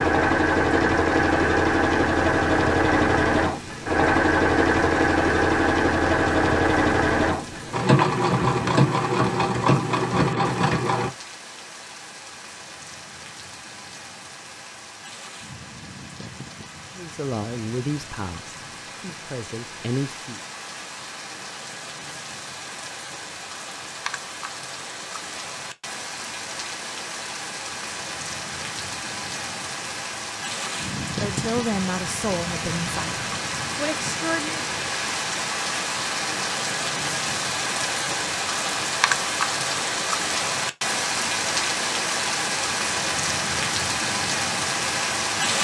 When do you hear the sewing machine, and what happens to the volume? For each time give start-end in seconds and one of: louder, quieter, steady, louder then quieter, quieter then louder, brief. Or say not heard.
0.0-11.1 steady.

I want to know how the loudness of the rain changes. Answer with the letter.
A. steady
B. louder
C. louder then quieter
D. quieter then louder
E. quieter
B.